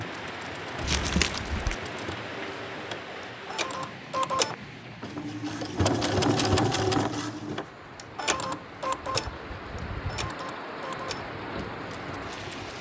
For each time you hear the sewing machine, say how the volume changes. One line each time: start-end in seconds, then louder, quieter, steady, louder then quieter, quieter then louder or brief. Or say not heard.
0.0-12.7 louder then quieter.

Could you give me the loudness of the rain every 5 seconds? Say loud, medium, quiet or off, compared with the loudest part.
loud, medium, loud.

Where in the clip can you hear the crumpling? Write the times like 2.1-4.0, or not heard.
0.8-1.8.